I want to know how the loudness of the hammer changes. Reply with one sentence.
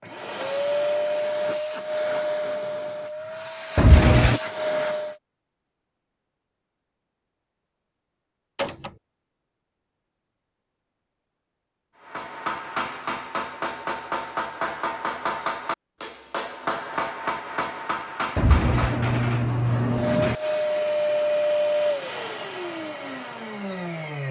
The volume of the hammer stays about the same.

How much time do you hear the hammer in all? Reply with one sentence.
The hammer can be heard for 7 seconds in total.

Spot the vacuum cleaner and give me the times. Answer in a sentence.
You can hear the vacuum cleaner from 0.0 to 5.2 s and from 19.9 to 24.2 s.